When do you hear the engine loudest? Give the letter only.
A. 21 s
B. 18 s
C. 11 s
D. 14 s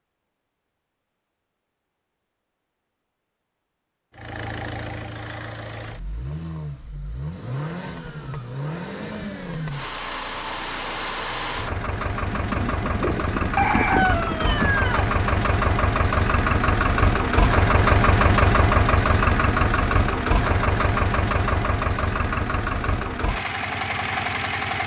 B.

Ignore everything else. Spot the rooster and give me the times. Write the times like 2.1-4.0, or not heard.
12.2-15.1.